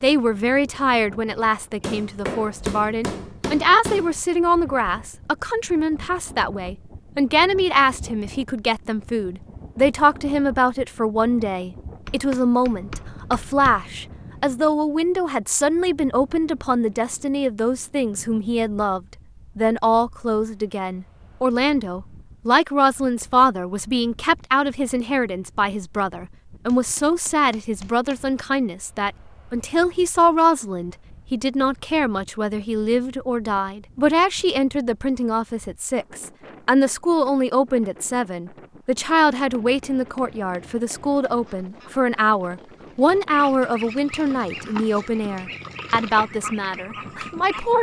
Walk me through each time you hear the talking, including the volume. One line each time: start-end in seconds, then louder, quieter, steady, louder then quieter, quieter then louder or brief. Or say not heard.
0.0-47.7 steady.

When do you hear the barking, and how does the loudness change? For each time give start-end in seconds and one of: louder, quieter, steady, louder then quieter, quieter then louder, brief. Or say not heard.
not heard.